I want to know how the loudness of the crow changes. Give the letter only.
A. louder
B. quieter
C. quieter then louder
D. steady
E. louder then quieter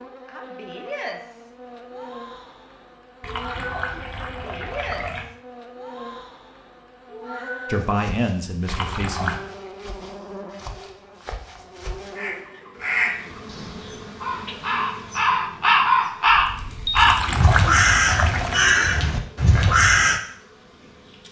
A.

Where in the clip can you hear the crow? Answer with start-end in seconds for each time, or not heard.
12.2-20.2.